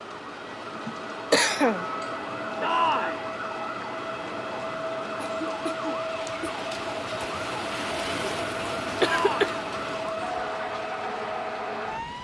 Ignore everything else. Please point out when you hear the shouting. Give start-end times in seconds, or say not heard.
2.6-3.2, 9.0-9.6.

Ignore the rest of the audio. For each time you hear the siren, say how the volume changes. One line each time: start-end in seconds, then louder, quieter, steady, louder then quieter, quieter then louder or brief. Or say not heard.
0.0-12.1 steady.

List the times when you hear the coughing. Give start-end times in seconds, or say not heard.
0.8-1.9, 5.2-6.5, 9.0-9.6.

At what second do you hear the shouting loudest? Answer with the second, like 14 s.
3 s.